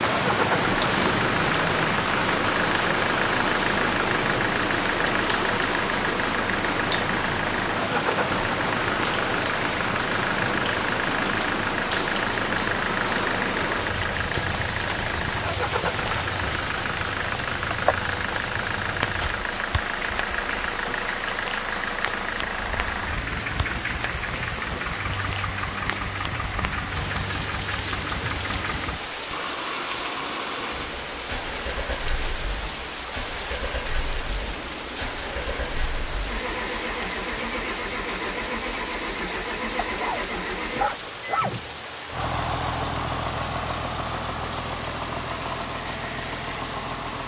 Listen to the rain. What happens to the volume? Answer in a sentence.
The volume of the rain goes down.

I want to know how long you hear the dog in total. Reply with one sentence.
You can hear the dog for 2 seconds altogether.